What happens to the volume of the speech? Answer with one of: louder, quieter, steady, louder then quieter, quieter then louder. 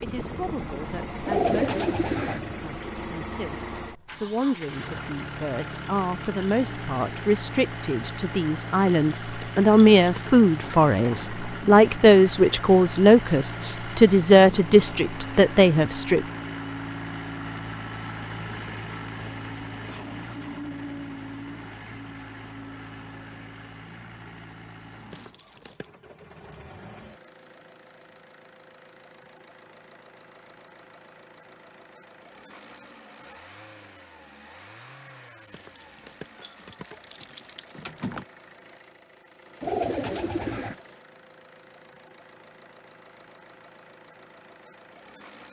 louder.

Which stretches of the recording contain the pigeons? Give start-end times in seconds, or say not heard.
1.2-2.4, 39.6-40.8.